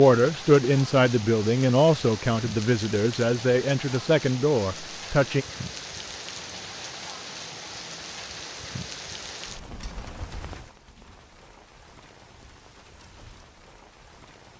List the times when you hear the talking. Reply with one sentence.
The talking can be heard from 0.0 to 5.5 s.